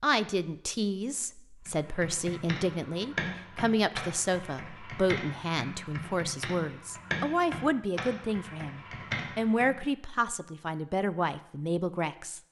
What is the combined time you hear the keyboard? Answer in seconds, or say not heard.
8 s.